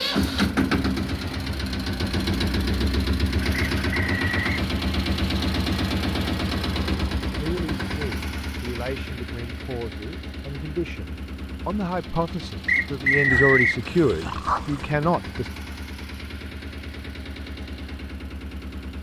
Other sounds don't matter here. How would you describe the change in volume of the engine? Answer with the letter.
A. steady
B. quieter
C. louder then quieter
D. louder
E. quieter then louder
B.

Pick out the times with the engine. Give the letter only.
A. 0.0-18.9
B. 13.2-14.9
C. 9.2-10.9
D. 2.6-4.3
A.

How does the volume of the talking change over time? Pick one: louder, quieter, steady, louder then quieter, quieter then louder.
louder.